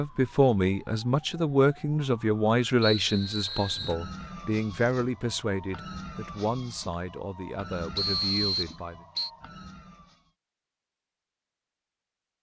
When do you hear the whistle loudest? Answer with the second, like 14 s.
8 s.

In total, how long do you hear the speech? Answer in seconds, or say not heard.
9 s.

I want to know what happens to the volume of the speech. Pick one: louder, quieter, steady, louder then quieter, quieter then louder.
quieter.